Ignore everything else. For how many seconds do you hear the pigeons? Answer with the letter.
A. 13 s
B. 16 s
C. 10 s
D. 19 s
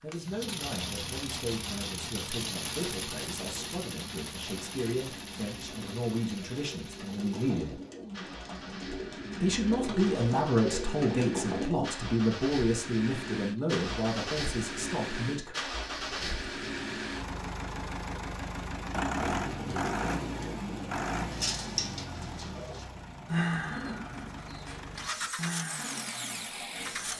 B.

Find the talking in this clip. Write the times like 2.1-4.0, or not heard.
0.0-7.8, 9.4-15.6.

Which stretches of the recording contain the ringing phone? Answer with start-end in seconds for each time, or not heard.
not heard.